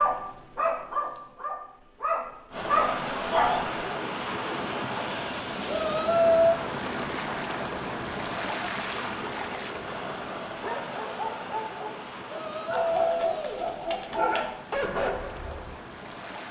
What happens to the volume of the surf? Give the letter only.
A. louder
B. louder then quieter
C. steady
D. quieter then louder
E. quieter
E.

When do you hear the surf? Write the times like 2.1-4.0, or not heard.
2.5-16.4.